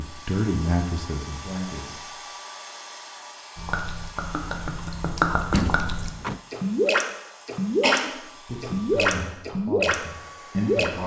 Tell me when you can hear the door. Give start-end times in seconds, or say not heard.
5.5-6.4.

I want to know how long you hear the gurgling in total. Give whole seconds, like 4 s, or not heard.
7 s.